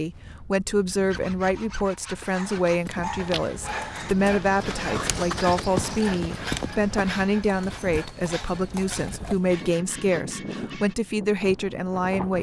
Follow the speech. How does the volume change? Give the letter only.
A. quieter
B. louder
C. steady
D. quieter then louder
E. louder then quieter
C.